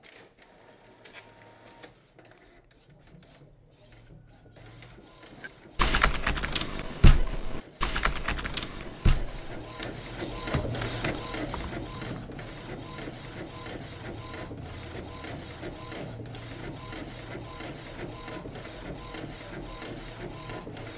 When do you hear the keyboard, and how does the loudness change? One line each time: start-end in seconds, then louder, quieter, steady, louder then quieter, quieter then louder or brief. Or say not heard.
5.8-12.3 quieter.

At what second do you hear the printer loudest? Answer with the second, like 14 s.
11 s.